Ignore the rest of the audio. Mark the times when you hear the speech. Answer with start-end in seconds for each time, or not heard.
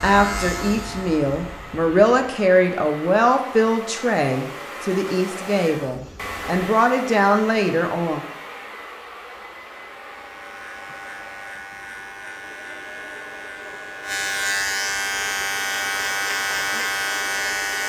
0.0-8.2.